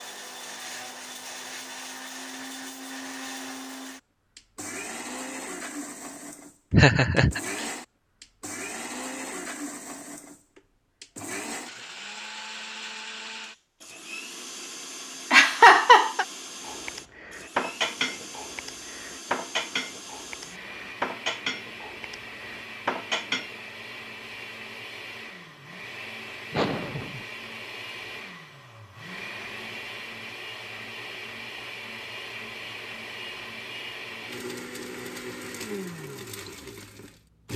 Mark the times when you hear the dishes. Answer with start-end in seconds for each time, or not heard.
16.6-23.5.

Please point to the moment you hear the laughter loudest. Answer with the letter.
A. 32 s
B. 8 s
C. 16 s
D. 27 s
C.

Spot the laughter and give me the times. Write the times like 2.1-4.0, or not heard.
6.7-7.7, 15.3-16.2, 26.5-27.2.